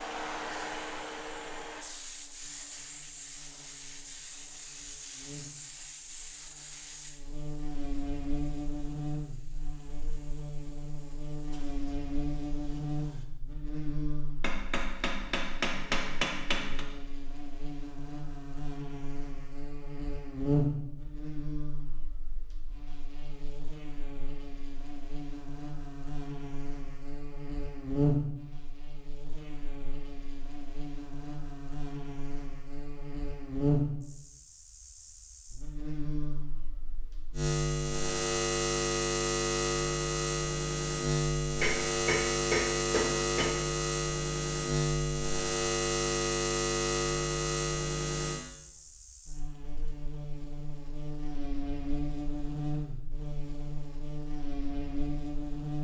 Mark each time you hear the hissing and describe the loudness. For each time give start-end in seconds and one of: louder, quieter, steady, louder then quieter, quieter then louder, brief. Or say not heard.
0.0-13.2 quieter.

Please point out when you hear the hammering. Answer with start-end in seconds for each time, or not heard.
14.4-16.9, 41.6-43.5.